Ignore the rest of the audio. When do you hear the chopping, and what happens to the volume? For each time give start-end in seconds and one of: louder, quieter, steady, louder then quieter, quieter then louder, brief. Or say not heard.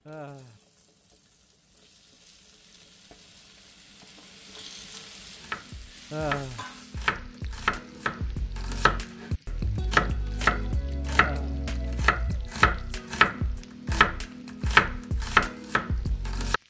5.4-16.6 louder.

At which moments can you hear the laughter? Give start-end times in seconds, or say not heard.
0.1-0.6, 6.1-6.7, 11.1-11.7.